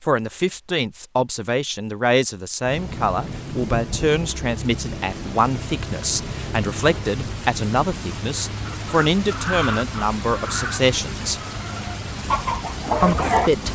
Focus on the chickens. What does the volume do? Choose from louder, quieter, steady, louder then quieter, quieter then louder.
quieter then louder.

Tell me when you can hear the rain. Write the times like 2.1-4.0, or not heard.
2.6-13.7.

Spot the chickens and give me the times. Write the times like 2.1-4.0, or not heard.
8.7-13.5.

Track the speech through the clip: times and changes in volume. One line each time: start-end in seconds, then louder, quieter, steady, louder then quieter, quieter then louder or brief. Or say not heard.
0.0-11.4 steady
13.0-13.7 brief.